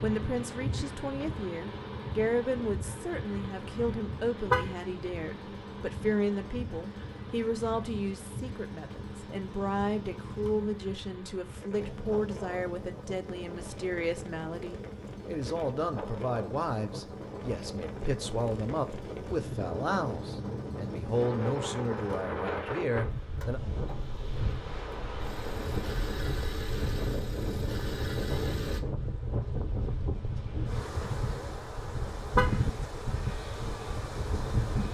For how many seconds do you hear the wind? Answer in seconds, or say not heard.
35 s.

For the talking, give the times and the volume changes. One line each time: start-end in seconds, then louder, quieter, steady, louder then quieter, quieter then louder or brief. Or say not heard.
0.0-23.6 steady.